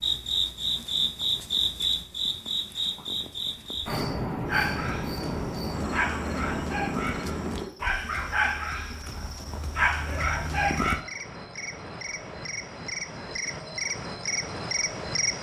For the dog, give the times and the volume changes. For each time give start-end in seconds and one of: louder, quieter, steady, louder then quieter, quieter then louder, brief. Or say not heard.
4.5-11.0 louder.